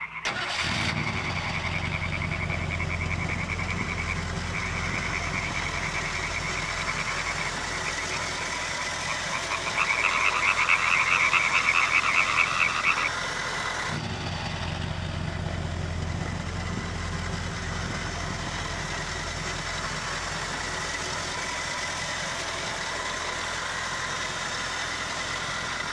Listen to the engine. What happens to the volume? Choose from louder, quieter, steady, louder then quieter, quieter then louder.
steady.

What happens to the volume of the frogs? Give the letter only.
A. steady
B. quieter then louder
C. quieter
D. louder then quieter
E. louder
E.